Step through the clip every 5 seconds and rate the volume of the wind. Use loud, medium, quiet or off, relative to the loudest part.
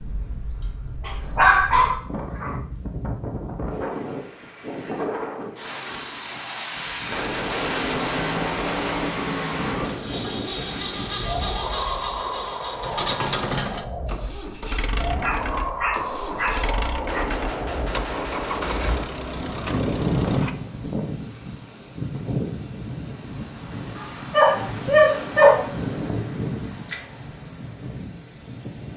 medium, loud, loud, loud, loud, loud.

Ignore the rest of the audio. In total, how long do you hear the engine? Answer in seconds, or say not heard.
13 s.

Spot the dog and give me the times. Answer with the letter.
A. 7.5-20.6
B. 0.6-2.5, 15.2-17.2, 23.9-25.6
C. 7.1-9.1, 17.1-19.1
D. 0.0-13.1
B.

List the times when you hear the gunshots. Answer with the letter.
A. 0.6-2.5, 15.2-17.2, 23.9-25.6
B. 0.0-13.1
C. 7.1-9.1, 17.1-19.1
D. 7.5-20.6
C.